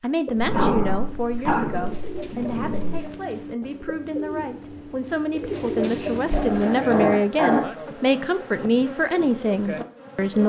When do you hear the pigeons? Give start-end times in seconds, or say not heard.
0.2-7.2.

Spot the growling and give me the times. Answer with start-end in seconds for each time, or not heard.
0.3-3.0, 5.8-7.7.